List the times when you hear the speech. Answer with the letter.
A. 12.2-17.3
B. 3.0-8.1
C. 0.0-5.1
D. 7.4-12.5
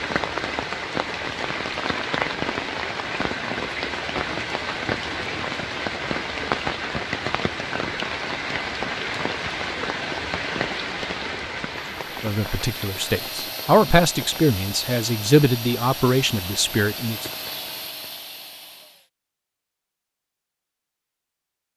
A.